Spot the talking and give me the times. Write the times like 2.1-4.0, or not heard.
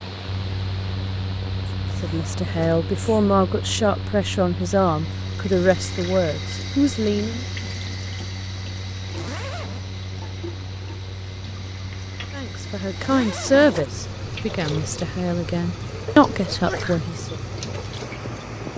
2.0-7.5, 12.3-17.4.